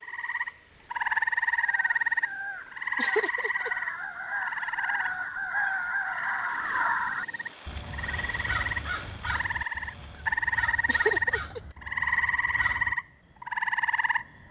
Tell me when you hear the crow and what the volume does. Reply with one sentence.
You can hear the crow from 1.5 to 12.9 s, getting louder then quieter.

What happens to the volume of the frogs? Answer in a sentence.
The loudness of the frogs goes down, then up.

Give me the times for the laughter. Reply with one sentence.
You can hear the laughter from 3.0 to 3.7 s and from 10.8 to 11.6 s.